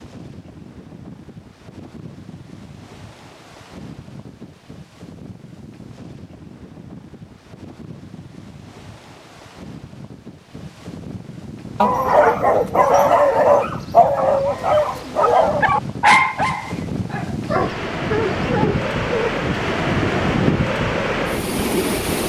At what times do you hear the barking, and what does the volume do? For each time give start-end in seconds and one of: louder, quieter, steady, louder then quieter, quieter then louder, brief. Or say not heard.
11.8-19.3 quieter.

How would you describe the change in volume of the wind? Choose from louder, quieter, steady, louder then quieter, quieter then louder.
louder.